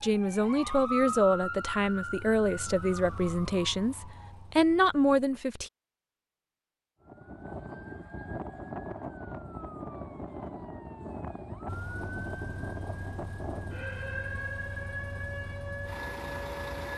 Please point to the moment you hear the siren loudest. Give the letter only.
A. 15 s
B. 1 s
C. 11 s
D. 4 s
B.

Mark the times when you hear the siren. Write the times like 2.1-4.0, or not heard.
0.0-4.5, 7.0-16.9.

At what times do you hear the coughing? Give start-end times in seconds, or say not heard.
not heard.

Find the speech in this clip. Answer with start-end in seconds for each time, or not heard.
0.0-5.7.